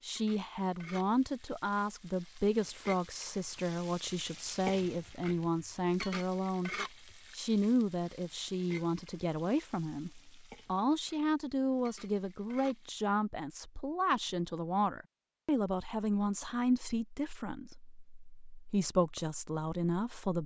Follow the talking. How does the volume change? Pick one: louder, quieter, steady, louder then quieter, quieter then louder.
steady.